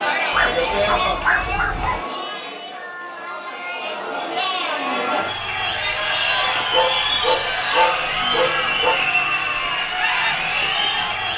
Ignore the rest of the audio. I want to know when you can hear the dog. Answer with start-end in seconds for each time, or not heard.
0.3-2.0, 6.4-8.9.